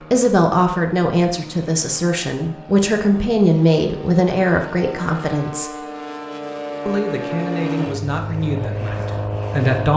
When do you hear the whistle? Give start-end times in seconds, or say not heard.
not heard.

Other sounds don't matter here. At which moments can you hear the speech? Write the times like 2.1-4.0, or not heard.
0.0-5.8, 6.8-9.9.